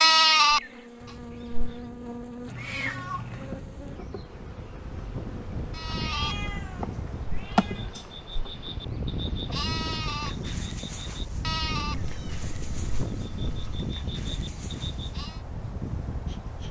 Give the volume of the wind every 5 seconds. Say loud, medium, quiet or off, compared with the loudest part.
medium, loud, loud, loud.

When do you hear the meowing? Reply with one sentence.
The meowing can be heard from 2.5 to 3.6 s, from 6.0 to 8.1 s and from 11.9 to 13.8 s.